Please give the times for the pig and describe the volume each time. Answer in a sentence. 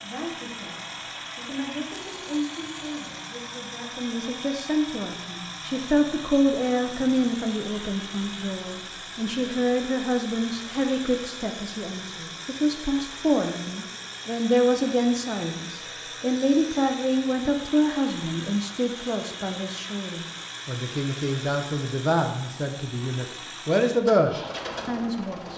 You can't hear the pig here.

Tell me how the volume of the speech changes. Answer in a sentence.
The loudness of the speech goes up.